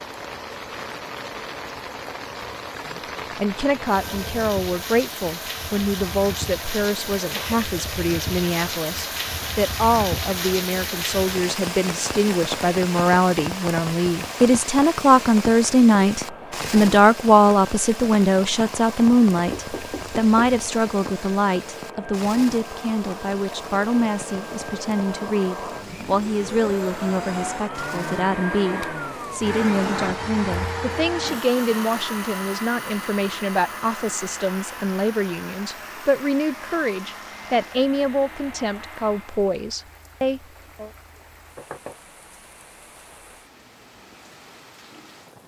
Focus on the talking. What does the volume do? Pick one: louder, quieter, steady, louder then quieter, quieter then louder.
louder then quieter.